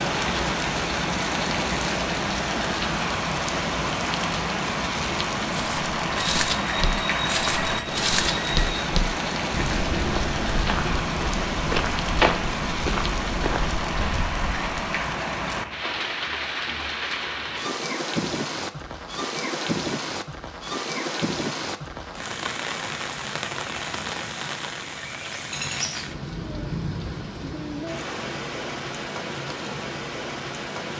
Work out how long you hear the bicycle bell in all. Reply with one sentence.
The bicycle bell can be heard for 3 seconds in total.